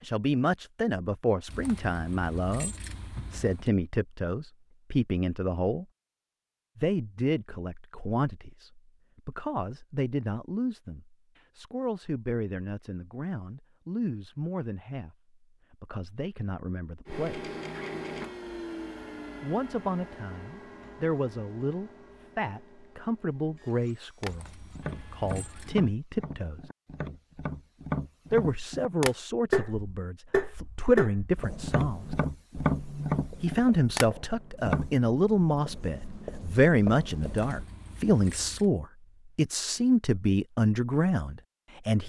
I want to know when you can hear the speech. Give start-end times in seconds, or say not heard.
0.0-5.8, 6.8-17.5, 19.4-26.7, 28.3-32.1, 33.4-42.0.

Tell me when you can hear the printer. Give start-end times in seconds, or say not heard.
17.1-25.9.